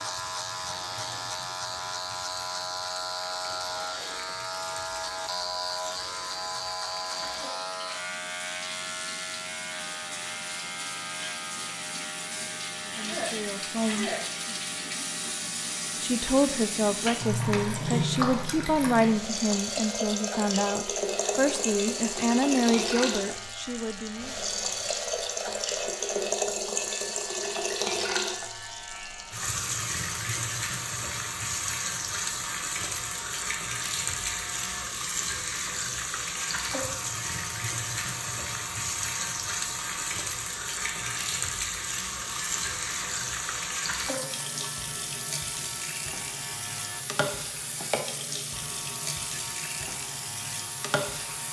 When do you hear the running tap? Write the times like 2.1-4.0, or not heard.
0.0-51.4.